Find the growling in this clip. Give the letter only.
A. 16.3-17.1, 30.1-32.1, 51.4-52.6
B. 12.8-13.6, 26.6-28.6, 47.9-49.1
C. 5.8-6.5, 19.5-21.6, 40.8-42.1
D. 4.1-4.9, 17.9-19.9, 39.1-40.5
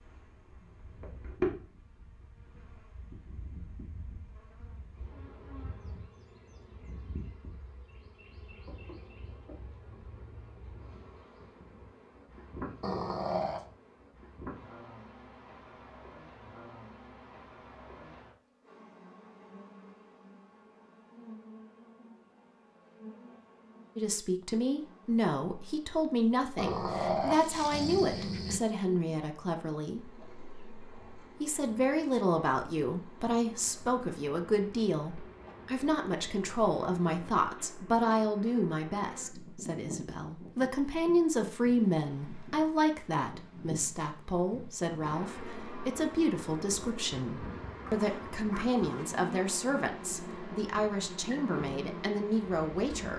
B.